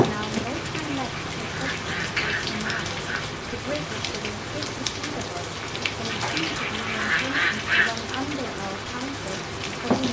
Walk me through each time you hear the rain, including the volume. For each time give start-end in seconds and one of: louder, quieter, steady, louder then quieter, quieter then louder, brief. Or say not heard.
0.0-10.0 steady.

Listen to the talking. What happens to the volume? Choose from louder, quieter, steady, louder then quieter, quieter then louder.
steady.